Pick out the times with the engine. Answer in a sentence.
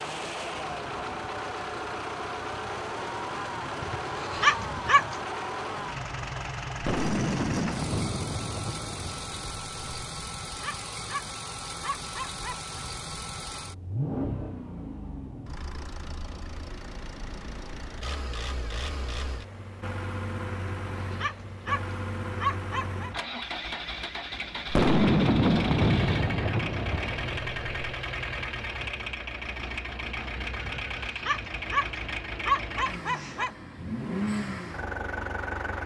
You can hear the engine from 0.0 to 35.8 s.